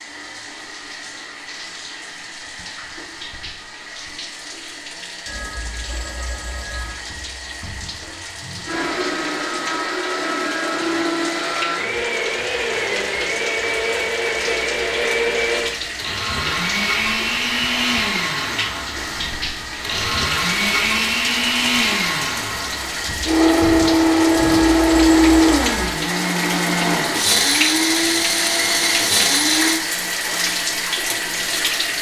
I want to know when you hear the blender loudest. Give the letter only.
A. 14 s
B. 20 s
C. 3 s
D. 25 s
D.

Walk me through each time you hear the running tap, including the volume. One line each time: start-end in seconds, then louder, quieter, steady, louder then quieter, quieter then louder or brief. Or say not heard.
0.0-31.9 louder.